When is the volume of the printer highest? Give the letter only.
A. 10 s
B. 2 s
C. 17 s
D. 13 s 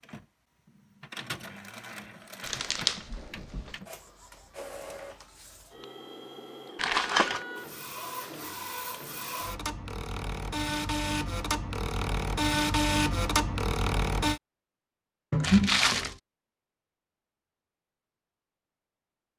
D.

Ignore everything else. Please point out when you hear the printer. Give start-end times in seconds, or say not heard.
0.0-14.4.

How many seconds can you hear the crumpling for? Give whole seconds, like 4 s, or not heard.
3 s.